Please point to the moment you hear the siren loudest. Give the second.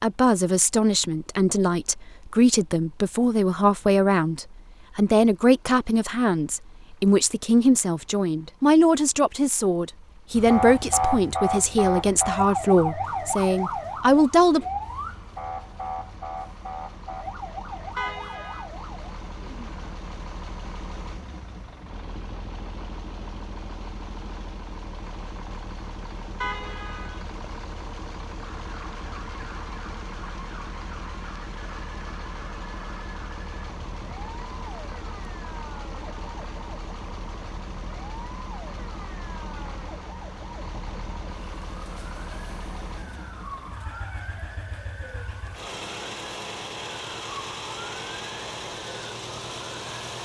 11 s.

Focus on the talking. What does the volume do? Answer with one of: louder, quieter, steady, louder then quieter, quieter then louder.
steady.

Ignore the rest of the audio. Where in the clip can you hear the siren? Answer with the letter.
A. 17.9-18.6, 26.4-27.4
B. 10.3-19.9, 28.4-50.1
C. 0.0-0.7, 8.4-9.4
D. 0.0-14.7
B.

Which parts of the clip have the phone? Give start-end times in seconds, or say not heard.
not heard.